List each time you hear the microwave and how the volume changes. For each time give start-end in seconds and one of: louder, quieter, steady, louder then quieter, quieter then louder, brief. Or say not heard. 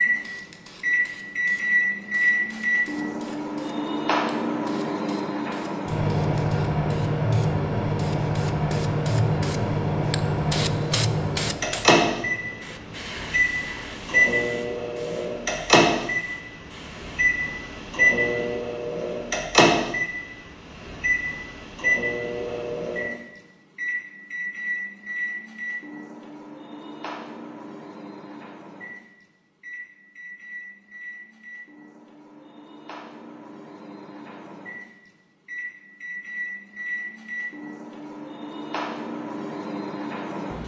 0.0-40.6 quieter.